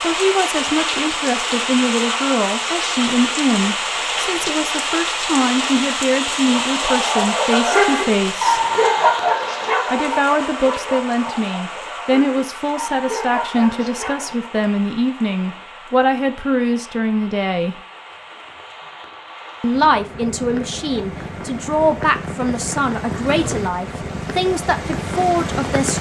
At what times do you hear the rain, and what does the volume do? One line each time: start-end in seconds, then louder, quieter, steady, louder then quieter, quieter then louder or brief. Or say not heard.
0.0-25.9 quieter then louder.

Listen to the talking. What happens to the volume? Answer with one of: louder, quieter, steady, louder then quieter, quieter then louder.
steady.